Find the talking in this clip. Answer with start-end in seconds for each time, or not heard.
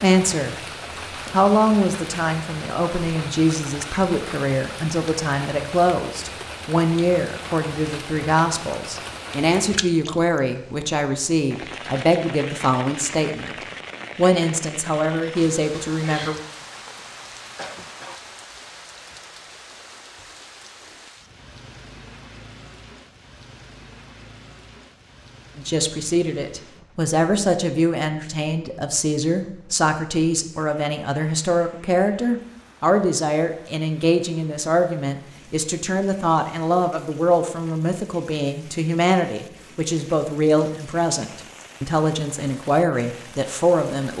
0.0-0.6, 1.3-16.4, 25.6-44.1.